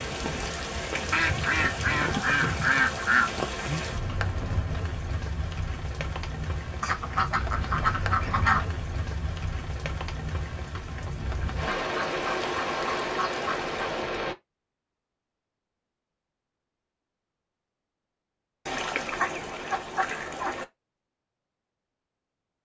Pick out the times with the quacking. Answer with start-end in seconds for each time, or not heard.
1.1-4.0, 6.8-8.7, 11.7-13.8, 18.6-20.6.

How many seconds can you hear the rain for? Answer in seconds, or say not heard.
14 s.